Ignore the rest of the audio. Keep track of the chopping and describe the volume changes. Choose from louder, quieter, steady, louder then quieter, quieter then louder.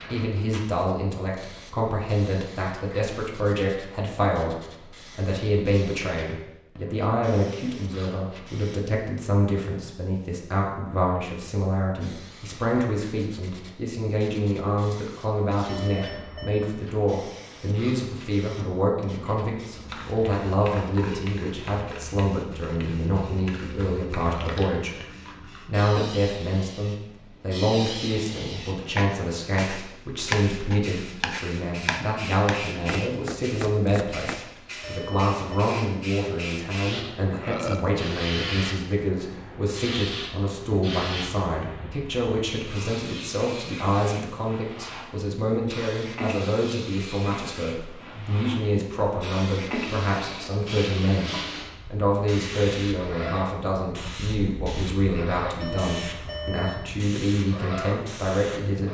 louder then quieter.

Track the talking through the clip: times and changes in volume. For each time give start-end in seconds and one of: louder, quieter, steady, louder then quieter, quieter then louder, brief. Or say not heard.
0.0-58.8 steady.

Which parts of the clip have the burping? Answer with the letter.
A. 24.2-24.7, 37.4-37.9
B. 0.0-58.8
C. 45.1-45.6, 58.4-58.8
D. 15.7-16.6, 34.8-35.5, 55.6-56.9
A.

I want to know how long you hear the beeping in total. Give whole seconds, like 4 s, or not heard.
3 s.